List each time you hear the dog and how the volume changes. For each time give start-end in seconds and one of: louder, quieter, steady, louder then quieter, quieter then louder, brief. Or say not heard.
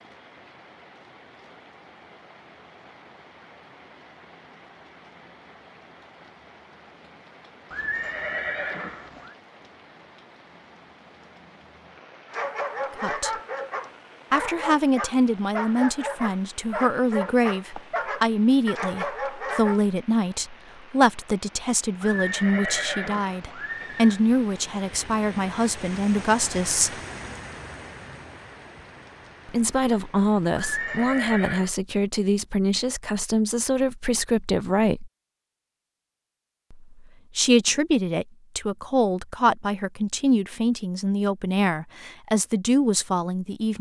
12.2-19.8 steady.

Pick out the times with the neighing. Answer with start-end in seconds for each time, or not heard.
7.7-9.3, 22.0-24.2, 30.6-31.8.